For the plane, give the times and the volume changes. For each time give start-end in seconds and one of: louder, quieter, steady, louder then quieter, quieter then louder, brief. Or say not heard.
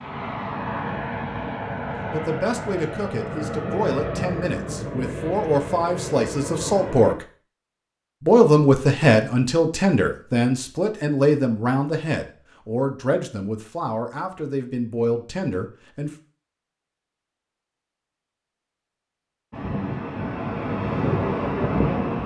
0.0-7.2 steady
19.5-22.2 brief.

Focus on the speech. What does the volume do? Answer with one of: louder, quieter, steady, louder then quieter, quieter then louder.
louder then quieter.